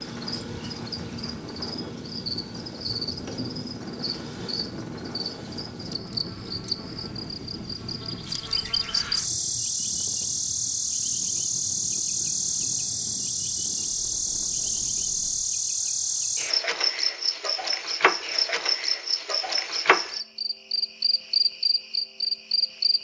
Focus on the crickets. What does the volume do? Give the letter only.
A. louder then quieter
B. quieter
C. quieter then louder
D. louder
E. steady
D.